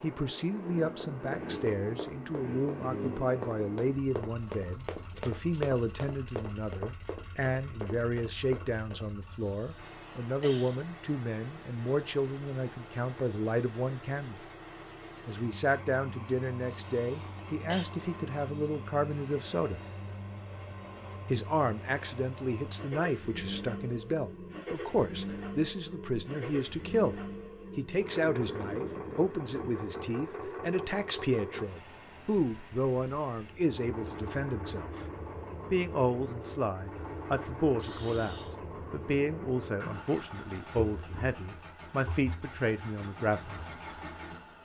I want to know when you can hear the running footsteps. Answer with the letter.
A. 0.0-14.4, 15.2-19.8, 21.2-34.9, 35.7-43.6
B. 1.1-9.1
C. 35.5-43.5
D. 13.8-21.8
B.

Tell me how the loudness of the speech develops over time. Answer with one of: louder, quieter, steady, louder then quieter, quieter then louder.
steady.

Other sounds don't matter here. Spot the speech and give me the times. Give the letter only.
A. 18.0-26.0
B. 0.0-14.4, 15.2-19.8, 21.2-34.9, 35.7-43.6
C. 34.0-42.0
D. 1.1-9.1
B.